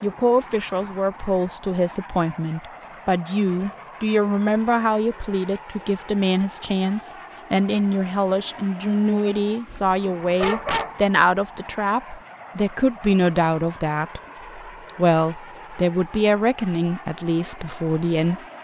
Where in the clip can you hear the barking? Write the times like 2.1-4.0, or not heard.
9.7-10.9.